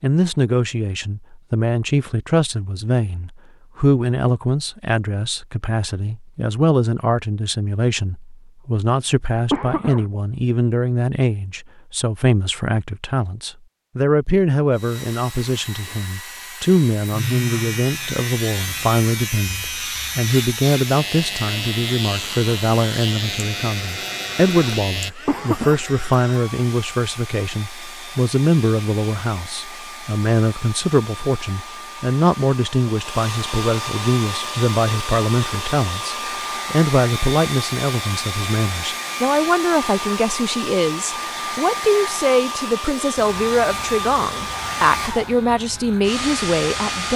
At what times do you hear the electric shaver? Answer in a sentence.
You can hear the electric shaver from 17.0 to 25.1 s and from 43.1 to 47.1 s.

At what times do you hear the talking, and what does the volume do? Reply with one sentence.
You can hear the talking from 0.0 to 47.1 s, at a steady volume.